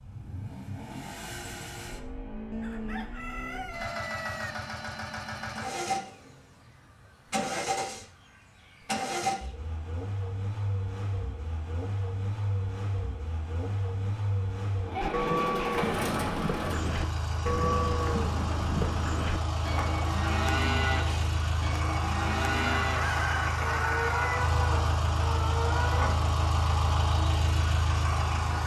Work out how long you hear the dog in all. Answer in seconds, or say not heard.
not heard.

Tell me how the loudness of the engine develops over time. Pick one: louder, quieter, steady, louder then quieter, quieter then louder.
louder.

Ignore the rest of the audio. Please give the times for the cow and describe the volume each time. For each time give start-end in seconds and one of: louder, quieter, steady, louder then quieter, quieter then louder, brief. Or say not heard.
15.0-26.1 steady.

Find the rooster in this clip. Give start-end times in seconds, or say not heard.
2.5-4.5, 22.9-24.4.